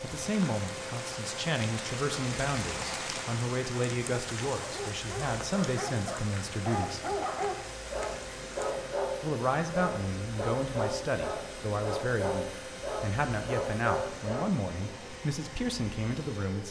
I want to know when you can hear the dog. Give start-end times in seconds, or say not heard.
4.0-14.6.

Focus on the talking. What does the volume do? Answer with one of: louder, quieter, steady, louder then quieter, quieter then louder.
steady.